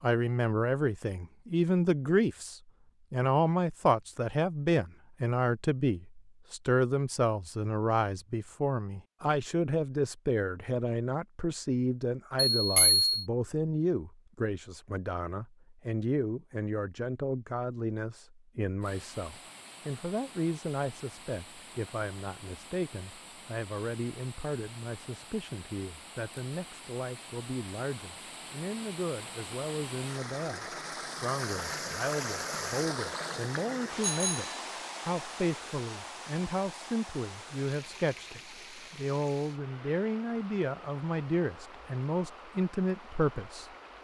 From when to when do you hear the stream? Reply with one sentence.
You can hear the stream from 18.8 to 43.9 s.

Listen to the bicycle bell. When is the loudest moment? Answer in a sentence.
The volume of the bicycle bell peaks at 13 seconds.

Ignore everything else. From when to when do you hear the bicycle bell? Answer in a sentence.
The bicycle bell can be heard from 12.6 to 13.2 s and from 34.0 to 34.6 s.